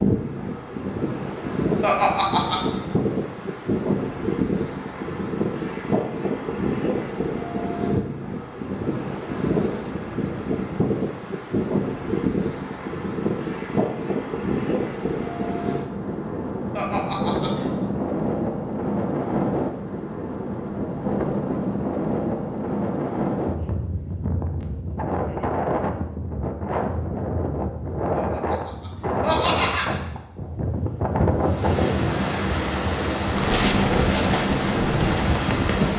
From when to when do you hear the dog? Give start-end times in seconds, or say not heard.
not heard.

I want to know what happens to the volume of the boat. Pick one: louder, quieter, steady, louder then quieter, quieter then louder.
steady.